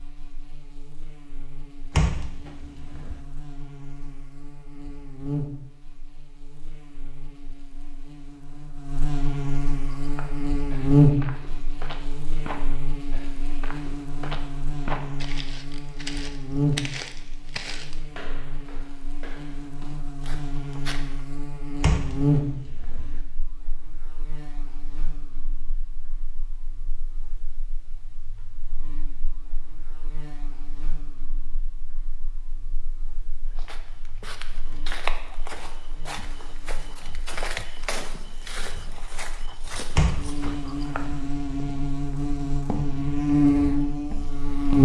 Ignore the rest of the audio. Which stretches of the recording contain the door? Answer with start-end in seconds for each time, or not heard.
1.9-3.2, 21.8-23.2, 40.0-41.3.